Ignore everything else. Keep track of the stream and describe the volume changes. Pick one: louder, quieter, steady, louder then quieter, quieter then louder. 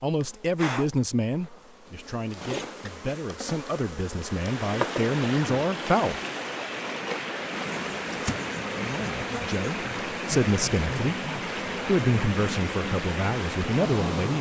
steady.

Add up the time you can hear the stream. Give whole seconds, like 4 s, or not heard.
10 s.